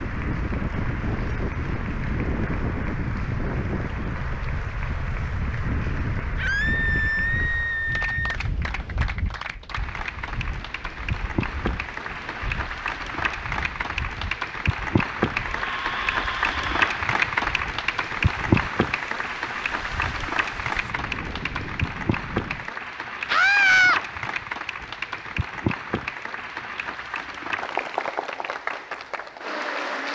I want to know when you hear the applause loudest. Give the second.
17 s.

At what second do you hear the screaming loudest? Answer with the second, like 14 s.
24 s.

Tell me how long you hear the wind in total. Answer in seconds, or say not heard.
23 s.